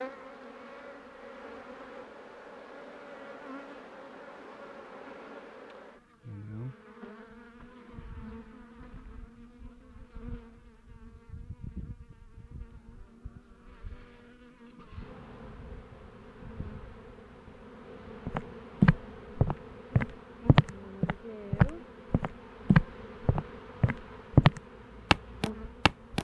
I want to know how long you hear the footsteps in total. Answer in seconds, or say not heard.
8 s.